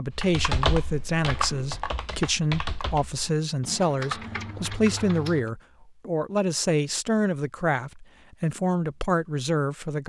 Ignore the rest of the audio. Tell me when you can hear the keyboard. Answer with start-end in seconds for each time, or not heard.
0.1-5.5.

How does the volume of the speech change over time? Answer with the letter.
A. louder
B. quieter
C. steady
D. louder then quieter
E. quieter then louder
C.